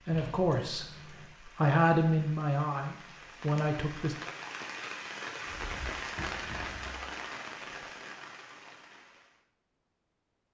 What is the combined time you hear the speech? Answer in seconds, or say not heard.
4 s.